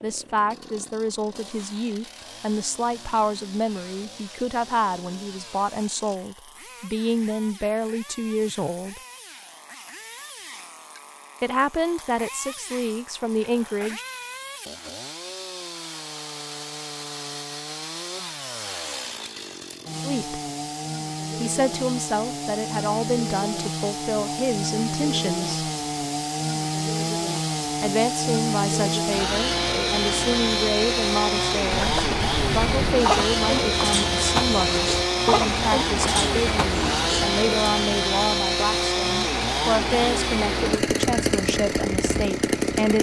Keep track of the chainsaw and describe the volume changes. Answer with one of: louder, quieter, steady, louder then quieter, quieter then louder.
louder.